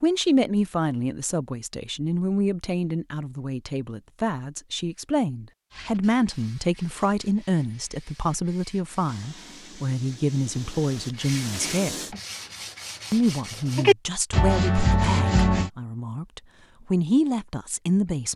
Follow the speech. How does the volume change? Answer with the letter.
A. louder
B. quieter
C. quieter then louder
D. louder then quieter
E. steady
E.